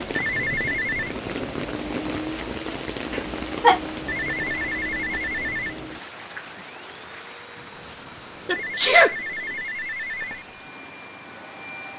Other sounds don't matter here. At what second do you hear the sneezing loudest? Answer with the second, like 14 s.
9 s.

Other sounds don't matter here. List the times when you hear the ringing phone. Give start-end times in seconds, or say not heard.
0.1-1.1, 4.0-5.8, 8.5-10.4.